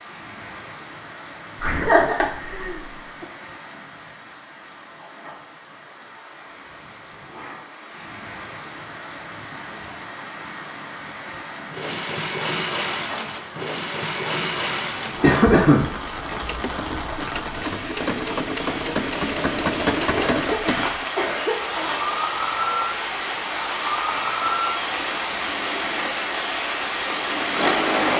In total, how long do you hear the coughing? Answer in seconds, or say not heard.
4 s.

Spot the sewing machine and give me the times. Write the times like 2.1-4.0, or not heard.
11.7-28.1.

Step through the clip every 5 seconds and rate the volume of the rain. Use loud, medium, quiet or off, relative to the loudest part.
quiet, quiet, medium, medium, loud, loud.